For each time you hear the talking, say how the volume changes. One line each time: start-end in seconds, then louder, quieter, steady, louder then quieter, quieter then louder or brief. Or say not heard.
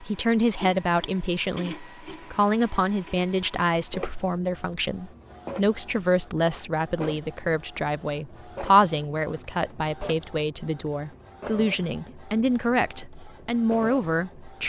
0.0-14.6 steady.